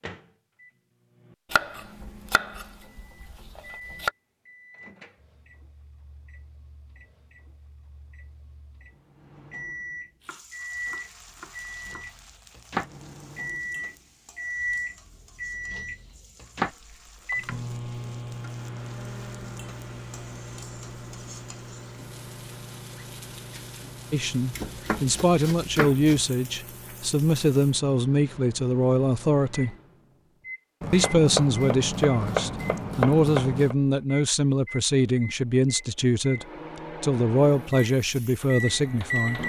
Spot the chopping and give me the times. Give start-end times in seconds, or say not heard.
1.5-4.1, 10.2-12.1, 24.5-26.2, 30.8-33.8.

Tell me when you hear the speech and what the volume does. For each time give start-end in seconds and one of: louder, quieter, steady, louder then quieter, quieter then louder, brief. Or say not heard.
24.1-29.8 steady
30.9-39.4 steady.